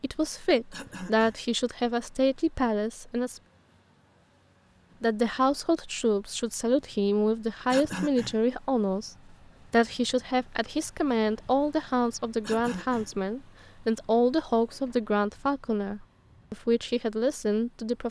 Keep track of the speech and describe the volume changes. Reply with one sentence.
The loudness of the speech stays about the same.